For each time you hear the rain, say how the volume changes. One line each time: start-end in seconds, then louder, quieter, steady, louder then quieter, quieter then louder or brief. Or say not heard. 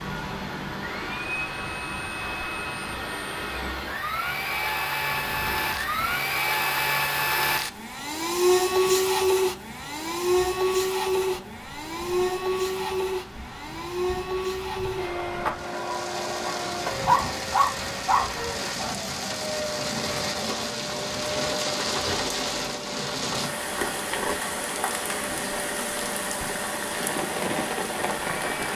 0.0-28.6 quieter then louder.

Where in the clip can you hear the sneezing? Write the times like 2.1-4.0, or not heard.
not heard.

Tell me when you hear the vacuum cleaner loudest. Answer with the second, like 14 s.
9 s.